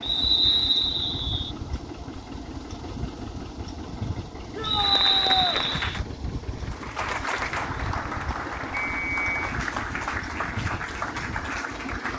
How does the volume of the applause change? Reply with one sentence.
The volume of the applause stays about the same.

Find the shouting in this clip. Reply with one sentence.
You can hear the shouting from 4.5 to 5.5 s.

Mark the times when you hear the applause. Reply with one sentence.
You can hear the applause from 4.8 to 12.1 s.